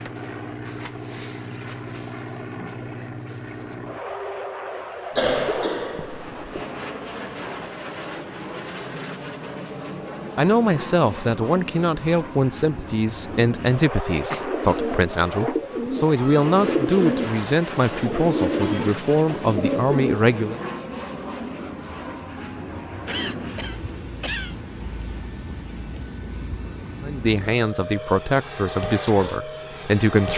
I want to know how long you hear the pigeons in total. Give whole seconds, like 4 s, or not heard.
6 s.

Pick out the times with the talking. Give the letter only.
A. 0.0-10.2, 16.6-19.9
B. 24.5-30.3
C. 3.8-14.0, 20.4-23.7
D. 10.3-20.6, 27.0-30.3
D.